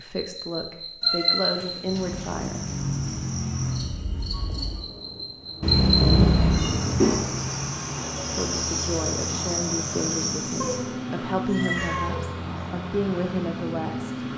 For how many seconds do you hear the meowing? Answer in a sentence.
The meowing can be heard for 4 seconds in total.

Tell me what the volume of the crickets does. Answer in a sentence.
The loudness of the crickets stays about the same.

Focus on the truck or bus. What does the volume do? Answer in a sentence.
The volume of the truck or bus stays about the same.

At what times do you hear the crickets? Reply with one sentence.
You can hear the crickets from 0.0 to 10.8 s.